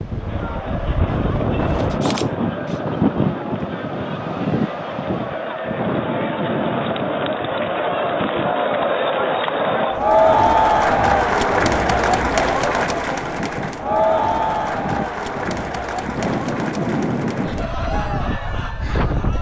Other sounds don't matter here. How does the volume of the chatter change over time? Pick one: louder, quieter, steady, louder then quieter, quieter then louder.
louder then quieter.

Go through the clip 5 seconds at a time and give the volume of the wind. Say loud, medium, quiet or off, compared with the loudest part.
loud, medium, medium, loud.